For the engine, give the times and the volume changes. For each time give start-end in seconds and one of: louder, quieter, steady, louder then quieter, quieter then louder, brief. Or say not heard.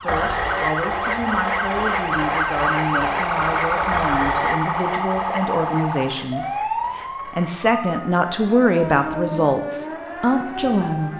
0.0-11.1 quieter.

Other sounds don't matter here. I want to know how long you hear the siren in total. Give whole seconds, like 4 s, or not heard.
11 s.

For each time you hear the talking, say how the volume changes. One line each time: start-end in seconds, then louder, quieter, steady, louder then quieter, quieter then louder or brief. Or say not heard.
0.0-11.1 louder.